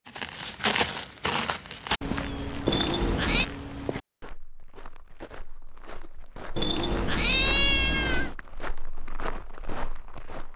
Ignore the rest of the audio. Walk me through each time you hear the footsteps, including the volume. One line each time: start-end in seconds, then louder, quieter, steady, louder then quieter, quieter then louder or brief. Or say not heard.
0.1-10.5 quieter then louder.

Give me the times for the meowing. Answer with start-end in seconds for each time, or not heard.
2.6-3.5, 6.5-8.3.